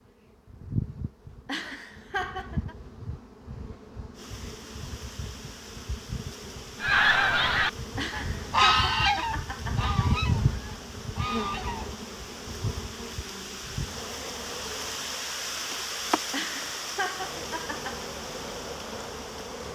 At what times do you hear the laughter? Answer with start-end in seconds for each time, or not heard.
1.4-2.8, 8.0-10.1, 16.3-18.1.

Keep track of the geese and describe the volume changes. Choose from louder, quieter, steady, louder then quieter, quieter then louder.
quieter.